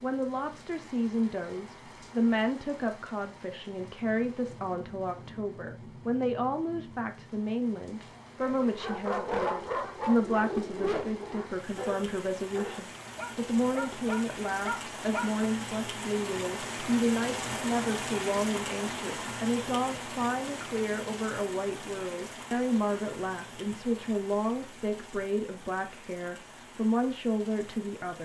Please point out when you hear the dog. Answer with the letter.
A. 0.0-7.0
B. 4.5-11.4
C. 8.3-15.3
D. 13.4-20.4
C.